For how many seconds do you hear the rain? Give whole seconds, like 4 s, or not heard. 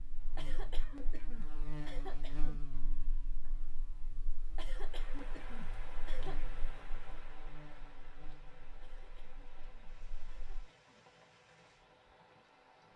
8 s.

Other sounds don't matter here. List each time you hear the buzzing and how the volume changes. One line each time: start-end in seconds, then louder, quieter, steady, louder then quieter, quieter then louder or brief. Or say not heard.
0.0-10.7 quieter.